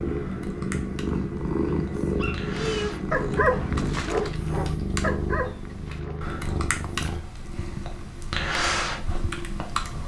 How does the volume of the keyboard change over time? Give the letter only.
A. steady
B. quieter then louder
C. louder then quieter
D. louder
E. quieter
D.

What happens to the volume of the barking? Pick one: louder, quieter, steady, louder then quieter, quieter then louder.
louder then quieter.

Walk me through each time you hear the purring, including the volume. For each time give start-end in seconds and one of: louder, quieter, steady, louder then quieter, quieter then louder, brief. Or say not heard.
0.0-10.0 quieter.